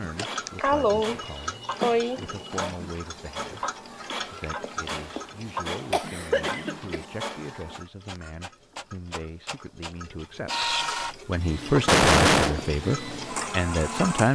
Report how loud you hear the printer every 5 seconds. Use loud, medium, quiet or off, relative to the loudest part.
medium, medium, loud.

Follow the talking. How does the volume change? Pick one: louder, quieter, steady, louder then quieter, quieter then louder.
louder.